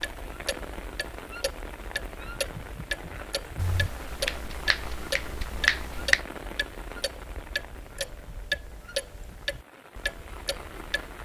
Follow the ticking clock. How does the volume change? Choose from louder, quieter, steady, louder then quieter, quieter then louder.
steady.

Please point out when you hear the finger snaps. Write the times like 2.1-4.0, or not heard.
3.5-6.2.